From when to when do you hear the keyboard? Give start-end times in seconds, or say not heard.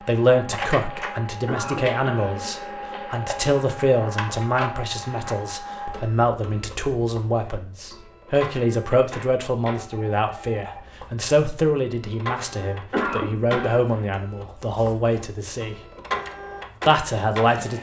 not heard.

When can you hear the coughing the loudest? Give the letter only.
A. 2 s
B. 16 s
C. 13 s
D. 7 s
C.